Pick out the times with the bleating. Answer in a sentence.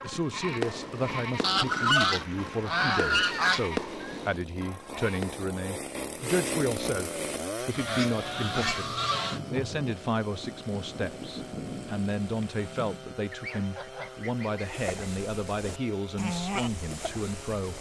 The bleating can be heard from 0.0 to 5.5 s and from 14.6 to 17.7 s.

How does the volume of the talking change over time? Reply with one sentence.
The volume of the talking stays about the same.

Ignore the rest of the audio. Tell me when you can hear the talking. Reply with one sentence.
The talking can be heard from 0.0 to 17.7 s.